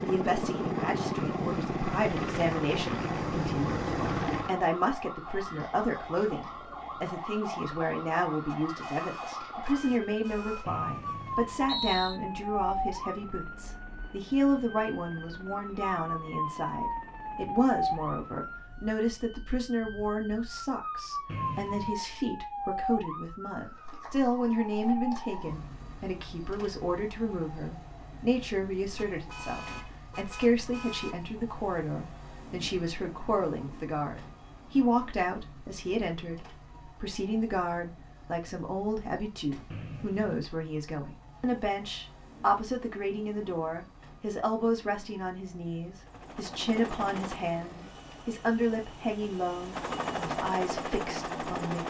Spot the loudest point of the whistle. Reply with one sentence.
The volume of the whistle peaks at 12 seconds.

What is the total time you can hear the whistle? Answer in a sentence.
You can hear the whistle for 3 seconds altogether.